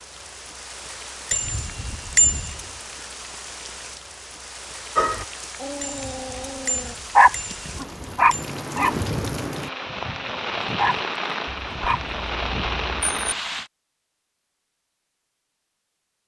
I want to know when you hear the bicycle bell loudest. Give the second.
2 s.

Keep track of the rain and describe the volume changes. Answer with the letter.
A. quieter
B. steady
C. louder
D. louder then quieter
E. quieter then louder
C.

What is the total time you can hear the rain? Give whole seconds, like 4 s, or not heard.
14 s.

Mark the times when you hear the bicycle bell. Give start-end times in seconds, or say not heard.
1.3-2.6, 5.8-8.4, 11.4-13.3.